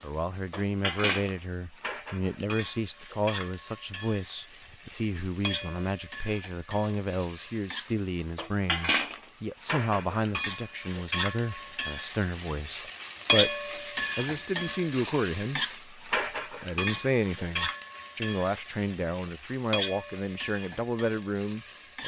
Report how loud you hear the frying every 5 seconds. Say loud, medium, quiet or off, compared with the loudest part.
medium, medium, loud, loud, quiet.